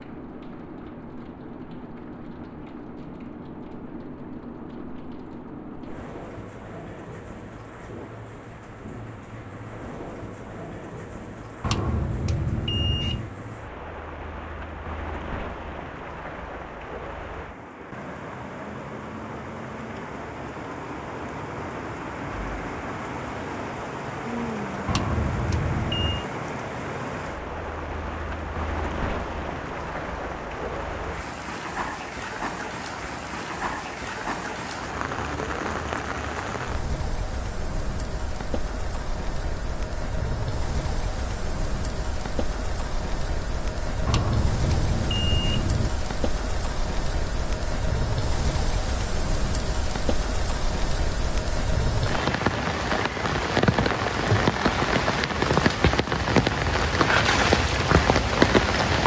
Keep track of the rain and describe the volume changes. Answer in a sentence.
The loudness of the rain goes up.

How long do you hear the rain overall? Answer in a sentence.
The rain can be heard for 59 seconds in total.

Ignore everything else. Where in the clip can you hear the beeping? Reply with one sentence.
The beeping can be heard from 11.6 to 13.3 s, from 24.9 to 26.2 s and from 44.0 to 45.9 s.